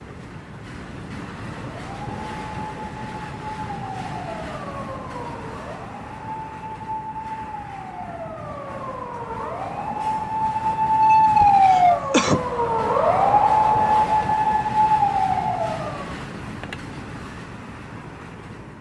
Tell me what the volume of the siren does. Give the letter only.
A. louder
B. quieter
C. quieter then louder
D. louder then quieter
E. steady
A.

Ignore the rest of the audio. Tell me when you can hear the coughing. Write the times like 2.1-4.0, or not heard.
11.4-12.4.